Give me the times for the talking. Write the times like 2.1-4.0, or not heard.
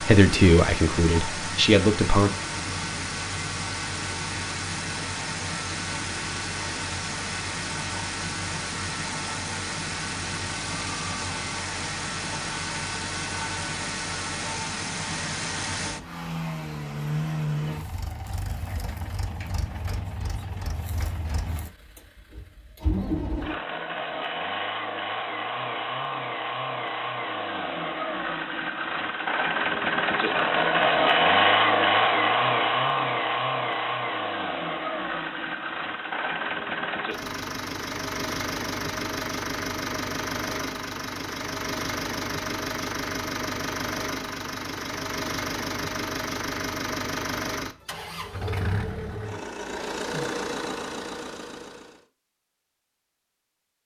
0.0-2.3.